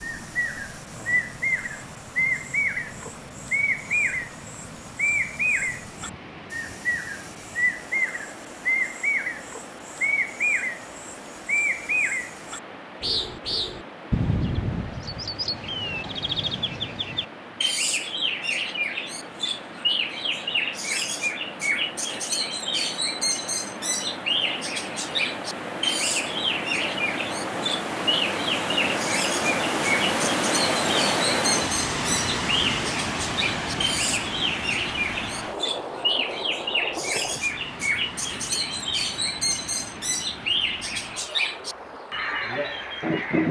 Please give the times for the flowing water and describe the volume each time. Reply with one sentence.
The flowing water can be heard from 0.0 to 43.4 s, getting louder then quieter.